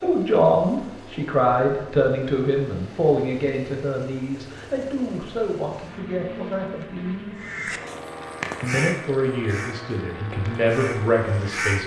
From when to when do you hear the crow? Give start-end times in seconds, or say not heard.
7.3-11.8.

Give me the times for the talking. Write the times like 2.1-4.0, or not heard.
0.0-7.2, 8.6-11.8.